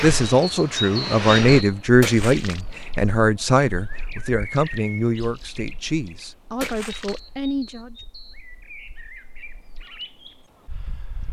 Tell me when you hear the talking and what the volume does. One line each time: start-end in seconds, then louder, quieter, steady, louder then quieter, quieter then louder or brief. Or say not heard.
0.0-8.0 quieter.